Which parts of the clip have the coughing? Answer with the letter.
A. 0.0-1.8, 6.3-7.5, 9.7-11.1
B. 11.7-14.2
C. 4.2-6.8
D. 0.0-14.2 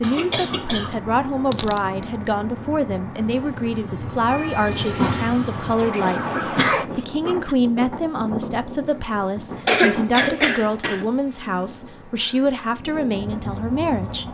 A.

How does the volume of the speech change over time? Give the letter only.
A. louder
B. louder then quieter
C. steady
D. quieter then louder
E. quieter
C.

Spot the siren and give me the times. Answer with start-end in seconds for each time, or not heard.
4.2-6.8.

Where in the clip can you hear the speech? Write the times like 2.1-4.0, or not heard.
0.0-14.2.